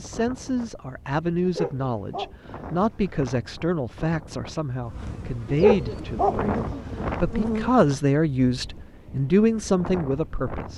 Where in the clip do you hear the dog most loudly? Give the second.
6 s.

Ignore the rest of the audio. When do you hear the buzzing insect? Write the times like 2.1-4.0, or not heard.
4.8-7.9.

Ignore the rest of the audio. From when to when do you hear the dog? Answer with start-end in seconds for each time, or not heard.
1.4-3.1, 5.5-7.2.